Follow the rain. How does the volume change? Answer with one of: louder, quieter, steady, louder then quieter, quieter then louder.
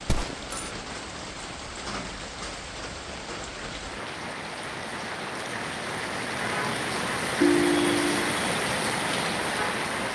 louder.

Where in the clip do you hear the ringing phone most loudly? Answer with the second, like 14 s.
8 s.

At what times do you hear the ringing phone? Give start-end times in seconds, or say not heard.
0.1-0.7, 7.4-8.3.